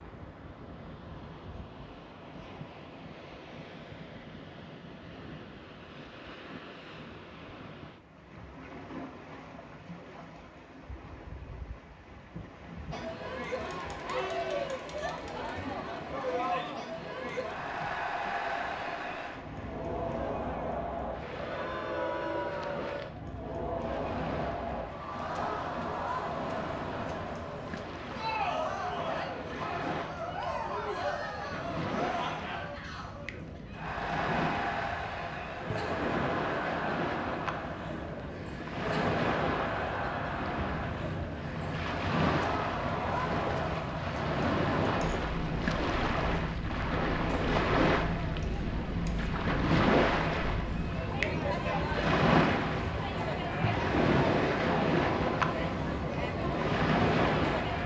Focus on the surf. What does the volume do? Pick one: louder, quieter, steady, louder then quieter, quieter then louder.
louder.